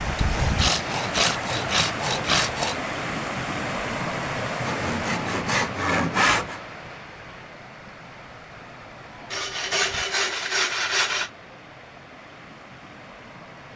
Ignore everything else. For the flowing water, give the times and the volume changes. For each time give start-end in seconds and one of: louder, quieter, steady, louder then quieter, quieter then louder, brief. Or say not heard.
0.0-13.7 quieter.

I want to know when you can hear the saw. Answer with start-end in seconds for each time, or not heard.
0.1-2.8, 4.7-6.6, 9.3-11.3.